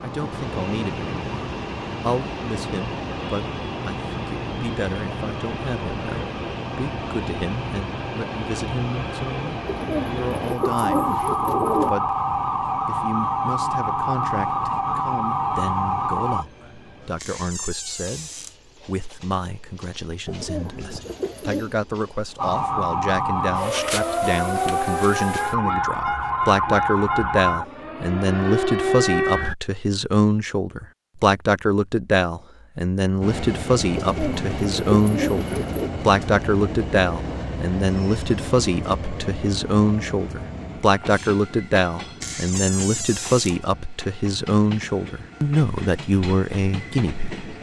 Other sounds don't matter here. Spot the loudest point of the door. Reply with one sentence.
The volume of the door peaks at 43 seconds.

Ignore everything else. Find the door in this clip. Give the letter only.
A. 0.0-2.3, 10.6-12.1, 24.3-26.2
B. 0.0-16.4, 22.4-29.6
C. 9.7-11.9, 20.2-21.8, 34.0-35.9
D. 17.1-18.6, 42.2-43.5
D.